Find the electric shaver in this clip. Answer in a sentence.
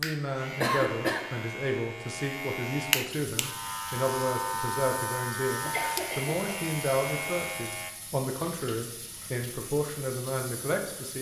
The electric shaver can be heard from 0.0 to 7.9 s.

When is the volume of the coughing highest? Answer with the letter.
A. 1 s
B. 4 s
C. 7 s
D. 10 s
A.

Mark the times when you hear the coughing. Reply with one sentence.
The coughing can be heard from 0.6 to 1.3 s and from 5.7 to 6.4 s.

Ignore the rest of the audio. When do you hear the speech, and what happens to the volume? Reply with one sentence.
You can hear the speech from 0.0 to 11.1 s, at a steady volume.